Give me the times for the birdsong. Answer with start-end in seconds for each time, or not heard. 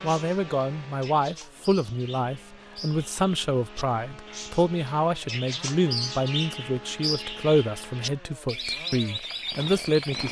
0.0-10.2.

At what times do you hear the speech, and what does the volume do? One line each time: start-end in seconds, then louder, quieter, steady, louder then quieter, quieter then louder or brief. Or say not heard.
0.0-10.2 steady.